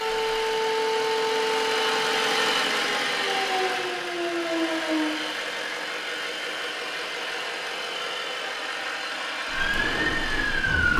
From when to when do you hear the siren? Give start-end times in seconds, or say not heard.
0.0-5.2, 9.5-10.9.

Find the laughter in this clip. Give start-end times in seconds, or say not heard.
not heard.